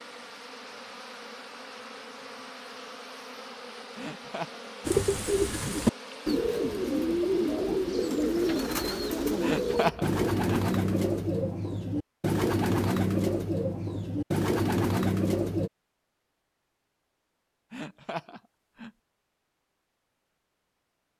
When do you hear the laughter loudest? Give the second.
10 s.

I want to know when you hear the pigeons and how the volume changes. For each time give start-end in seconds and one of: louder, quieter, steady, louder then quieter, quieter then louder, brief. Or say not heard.
4.8-15.7 steady.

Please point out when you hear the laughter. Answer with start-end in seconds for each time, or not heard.
4.0-4.6, 9.4-10.6, 17.7-18.9.